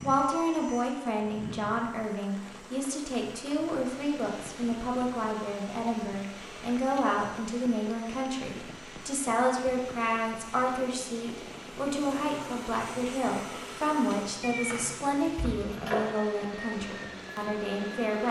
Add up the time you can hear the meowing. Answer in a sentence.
The meowing can be heard for 2 seconds in total.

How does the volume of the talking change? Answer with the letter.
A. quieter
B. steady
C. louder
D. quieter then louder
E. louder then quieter
B.